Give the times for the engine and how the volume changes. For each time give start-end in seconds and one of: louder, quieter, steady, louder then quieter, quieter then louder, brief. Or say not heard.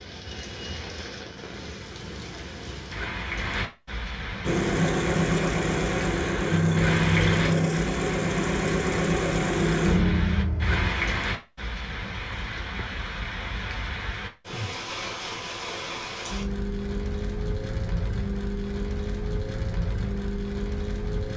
4.5-10.9 steady.